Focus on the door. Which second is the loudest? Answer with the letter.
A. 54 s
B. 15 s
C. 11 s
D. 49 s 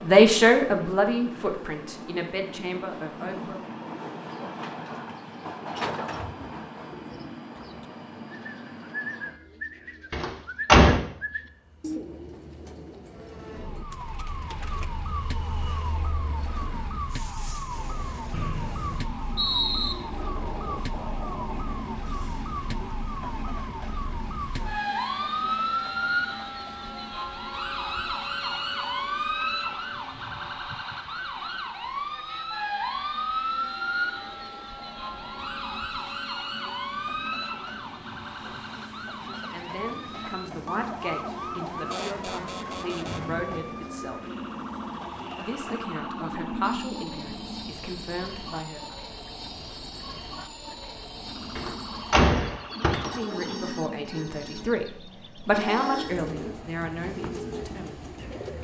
C.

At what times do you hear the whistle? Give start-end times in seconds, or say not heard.
18.3-19.9, 43.0-43.8.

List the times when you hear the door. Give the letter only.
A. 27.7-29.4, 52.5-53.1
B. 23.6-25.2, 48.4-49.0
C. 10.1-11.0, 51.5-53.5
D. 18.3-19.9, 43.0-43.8
C.